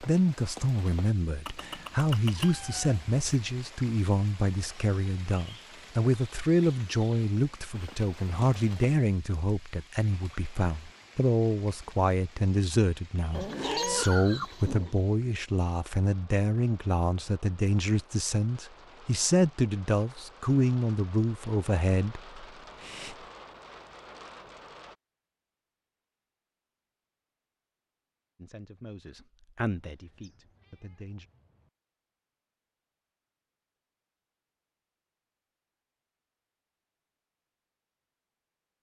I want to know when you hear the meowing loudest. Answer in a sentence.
The volume of the meowing peaks at 14 seconds.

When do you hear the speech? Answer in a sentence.
The speech can be heard from 0.0 to 23.1 s and from 28.4 to 31.2 s.